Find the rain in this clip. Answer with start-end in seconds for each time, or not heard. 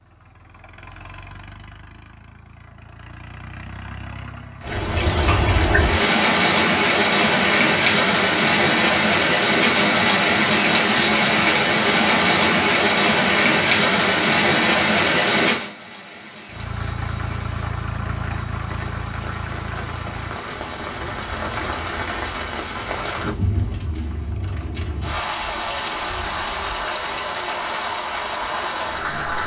4.6-29.4.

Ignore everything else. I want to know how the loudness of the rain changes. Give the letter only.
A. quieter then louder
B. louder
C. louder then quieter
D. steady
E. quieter
E.